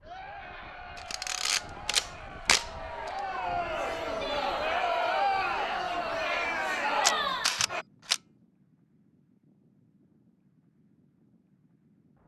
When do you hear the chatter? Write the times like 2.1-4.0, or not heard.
0.0-7.8.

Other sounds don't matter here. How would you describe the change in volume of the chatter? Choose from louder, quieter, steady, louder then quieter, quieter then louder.
louder.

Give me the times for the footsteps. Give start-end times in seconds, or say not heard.
not heard.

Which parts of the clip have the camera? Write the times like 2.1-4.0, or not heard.
0.9-3.1, 7.0-8.2.